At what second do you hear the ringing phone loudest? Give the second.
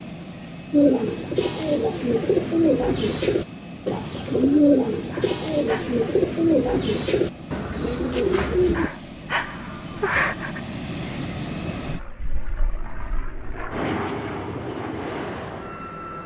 10 s.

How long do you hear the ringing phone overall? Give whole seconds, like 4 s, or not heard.
3 s.